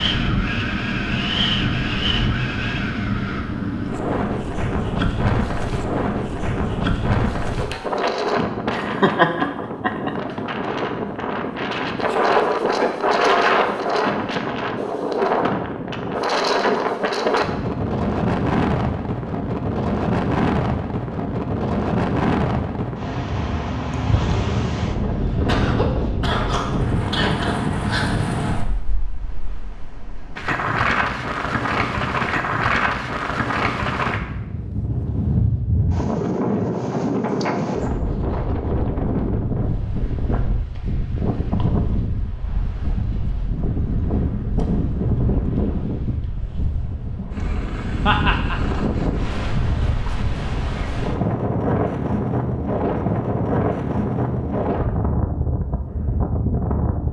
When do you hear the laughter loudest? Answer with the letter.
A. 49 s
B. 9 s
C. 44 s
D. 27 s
B.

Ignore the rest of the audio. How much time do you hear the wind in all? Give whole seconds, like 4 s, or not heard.
57 s.